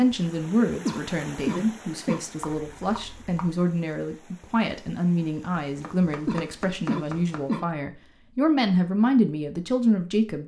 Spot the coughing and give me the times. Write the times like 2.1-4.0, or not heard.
0.8-2.2, 6.2-7.7.